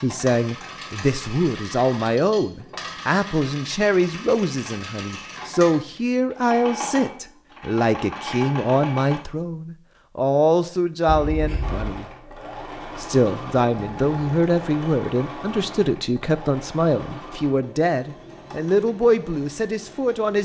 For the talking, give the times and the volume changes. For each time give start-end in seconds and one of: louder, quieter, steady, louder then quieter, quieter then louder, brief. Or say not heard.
0.0-12.1 steady
13.0-20.4 steady.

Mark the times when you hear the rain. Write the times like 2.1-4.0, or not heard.
not heard.